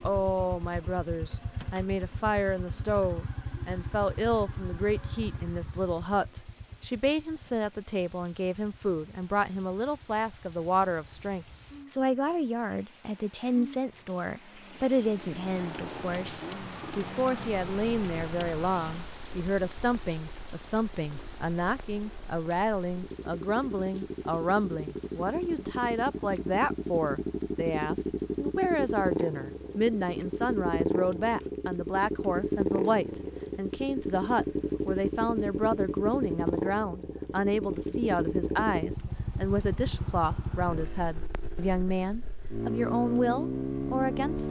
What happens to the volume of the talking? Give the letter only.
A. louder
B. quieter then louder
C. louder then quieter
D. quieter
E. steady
E.